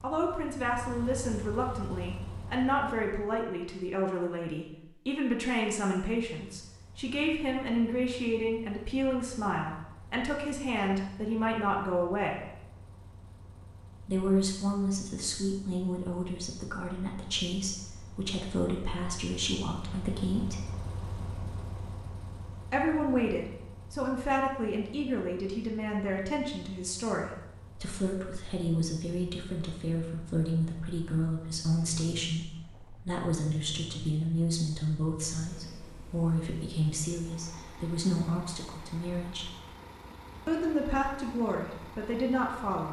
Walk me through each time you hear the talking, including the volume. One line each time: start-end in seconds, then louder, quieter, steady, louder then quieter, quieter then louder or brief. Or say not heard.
0.0-12.3 steady
14.0-20.6 steady
22.7-39.5 steady
40.5-42.8 brief.